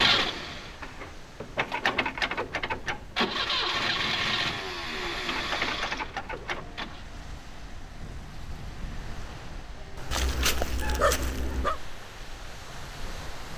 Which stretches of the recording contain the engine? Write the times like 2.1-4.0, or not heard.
0.0-7.0.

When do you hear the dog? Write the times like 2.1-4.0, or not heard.
10.1-11.8.